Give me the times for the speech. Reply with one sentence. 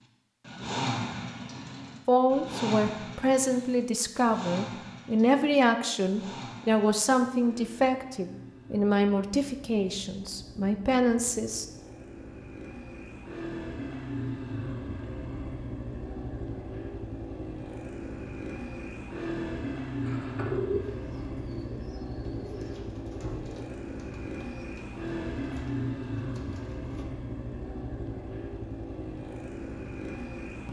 You can hear the speech from 2.0 to 11.7 s.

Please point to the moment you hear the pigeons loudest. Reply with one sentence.
The volume of the pigeons peaks at 21 seconds.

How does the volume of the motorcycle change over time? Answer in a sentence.
The volume of the motorcycle goes down, then up.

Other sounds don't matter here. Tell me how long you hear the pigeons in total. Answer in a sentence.
You can hear the pigeons for 7 seconds altogether.